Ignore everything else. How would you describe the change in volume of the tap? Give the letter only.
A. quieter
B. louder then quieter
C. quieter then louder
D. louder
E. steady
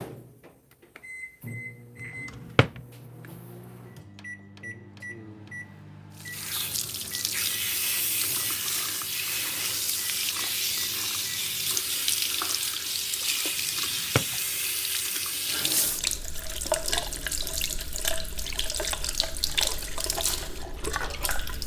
E.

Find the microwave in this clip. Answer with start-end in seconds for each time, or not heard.
0.0-11.8.